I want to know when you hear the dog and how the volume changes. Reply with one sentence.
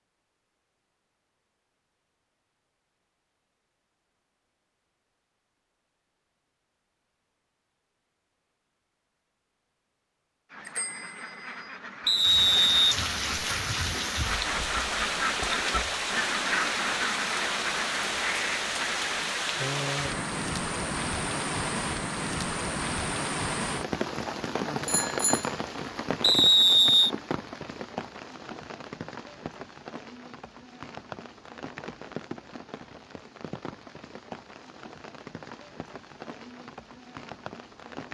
You can't hear the dog here.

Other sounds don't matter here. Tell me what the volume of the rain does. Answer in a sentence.
The loudness of the rain goes down.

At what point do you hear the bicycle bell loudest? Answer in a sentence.
The loudest moment of the bicycle bell is at 25 seconds.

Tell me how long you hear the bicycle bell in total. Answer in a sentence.
You can hear the bicycle bell for 2 seconds altogether.